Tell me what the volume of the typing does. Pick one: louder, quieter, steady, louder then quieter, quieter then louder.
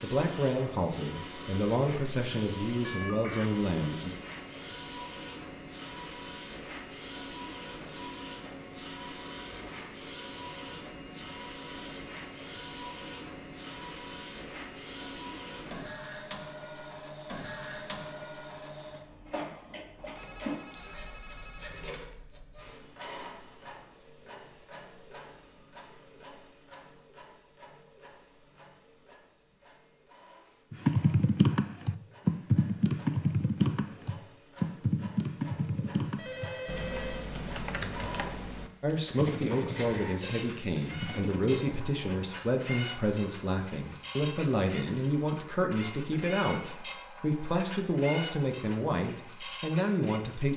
quieter.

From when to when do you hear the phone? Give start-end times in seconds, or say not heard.
2.8-3.5, 19.9-22.0, 36.0-37.3.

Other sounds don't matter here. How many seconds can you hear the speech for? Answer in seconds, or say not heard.
16 s.